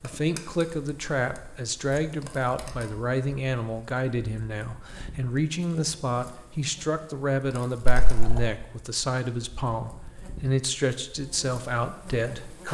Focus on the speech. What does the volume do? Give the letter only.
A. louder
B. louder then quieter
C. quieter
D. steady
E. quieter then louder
D.